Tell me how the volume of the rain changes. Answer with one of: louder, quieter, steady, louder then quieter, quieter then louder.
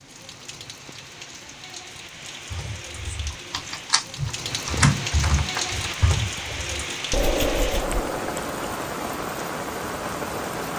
louder.